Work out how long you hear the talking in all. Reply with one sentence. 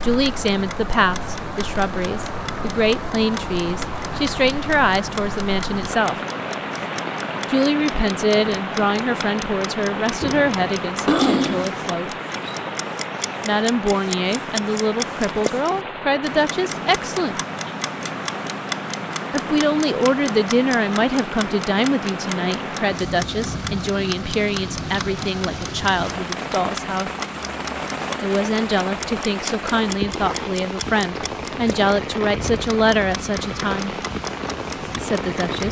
You can hear the talking for 29 seconds altogether.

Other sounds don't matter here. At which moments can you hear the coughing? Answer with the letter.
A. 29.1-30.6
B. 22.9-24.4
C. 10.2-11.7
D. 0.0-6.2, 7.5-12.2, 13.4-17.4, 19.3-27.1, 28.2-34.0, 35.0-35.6
C.